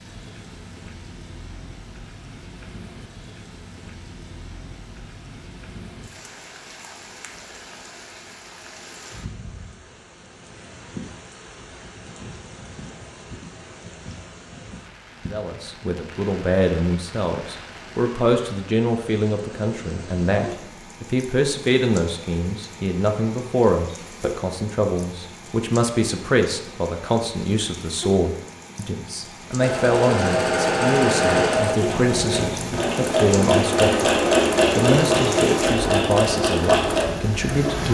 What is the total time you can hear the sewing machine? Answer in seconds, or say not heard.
8 s.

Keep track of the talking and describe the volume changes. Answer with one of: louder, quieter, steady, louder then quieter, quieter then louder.
steady.